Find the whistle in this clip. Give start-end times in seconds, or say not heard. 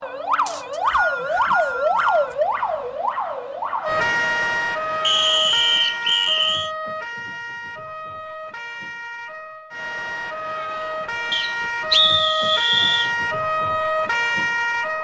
0.5-2.4, 5.0-6.7, 11.3-13.1.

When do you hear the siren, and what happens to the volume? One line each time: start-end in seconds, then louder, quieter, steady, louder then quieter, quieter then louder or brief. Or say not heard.
0.0-14.9 quieter then louder.